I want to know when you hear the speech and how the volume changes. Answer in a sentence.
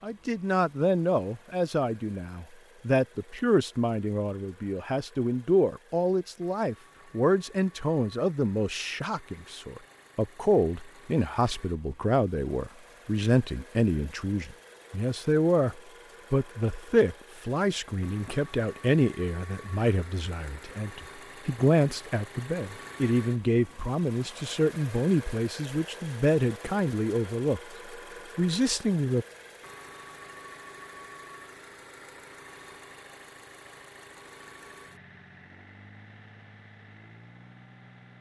You can hear the speech from 0.0 to 27.6 s, at a steady volume; and briefly from 28.4 to 29.2 s.